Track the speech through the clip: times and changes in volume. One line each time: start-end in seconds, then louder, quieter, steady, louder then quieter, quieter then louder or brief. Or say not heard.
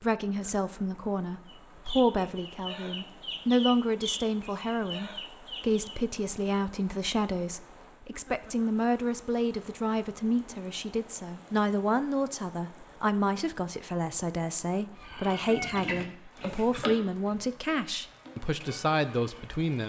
0.0-19.8 steady.